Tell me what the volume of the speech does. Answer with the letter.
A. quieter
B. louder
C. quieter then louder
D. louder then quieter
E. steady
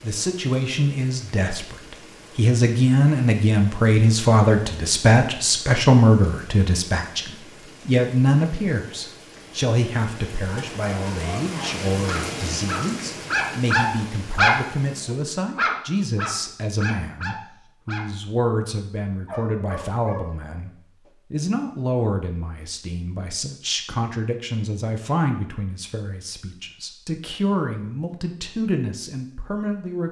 A.